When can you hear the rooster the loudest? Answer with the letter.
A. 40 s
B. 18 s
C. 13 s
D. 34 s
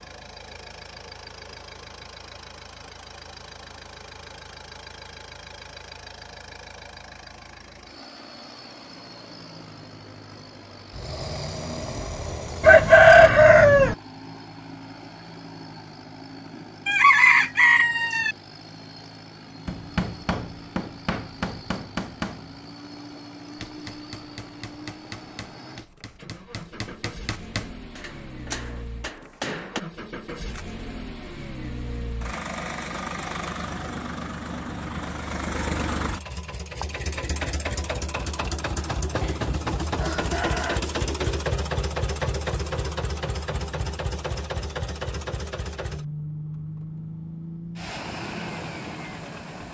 C.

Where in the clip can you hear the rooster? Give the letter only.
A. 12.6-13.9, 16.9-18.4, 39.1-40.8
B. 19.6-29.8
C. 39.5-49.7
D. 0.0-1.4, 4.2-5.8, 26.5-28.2
A.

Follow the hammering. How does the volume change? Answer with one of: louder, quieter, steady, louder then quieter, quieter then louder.
quieter then louder.